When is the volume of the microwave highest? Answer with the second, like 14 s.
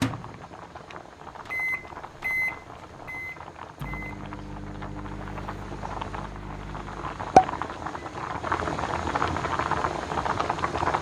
2 s.